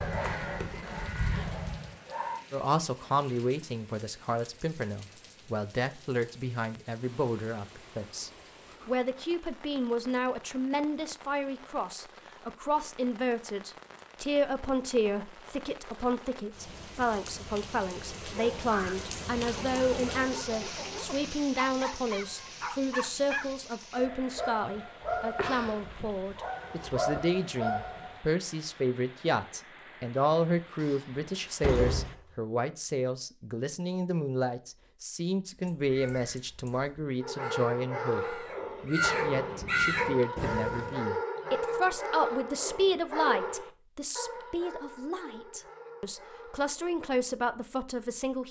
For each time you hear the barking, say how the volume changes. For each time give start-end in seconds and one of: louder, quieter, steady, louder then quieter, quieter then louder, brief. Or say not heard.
0.0-2.5 brief
18.6-28.2 louder
37.2-47.1 quieter.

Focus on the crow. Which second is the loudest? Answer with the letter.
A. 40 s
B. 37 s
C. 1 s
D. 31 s
A.